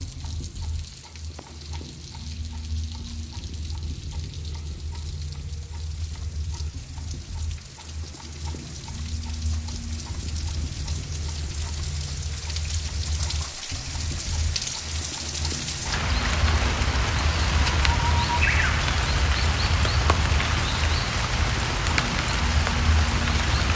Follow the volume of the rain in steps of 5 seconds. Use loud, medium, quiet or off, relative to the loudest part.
quiet, quiet, medium, loud, loud.